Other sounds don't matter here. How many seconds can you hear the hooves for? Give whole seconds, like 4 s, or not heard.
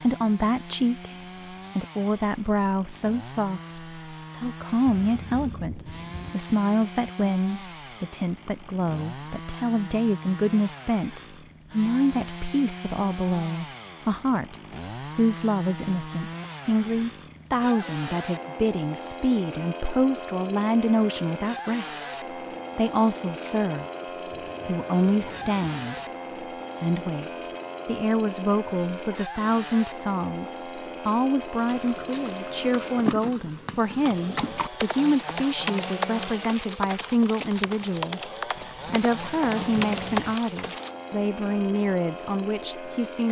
9 s.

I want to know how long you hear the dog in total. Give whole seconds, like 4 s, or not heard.
not heard.